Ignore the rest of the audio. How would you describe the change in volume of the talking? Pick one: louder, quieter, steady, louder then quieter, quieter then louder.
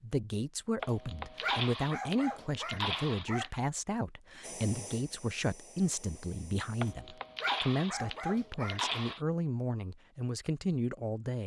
steady.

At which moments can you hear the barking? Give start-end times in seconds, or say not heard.
0.8-3.5, 6.8-9.2.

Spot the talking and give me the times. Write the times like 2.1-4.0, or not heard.
0.0-11.4.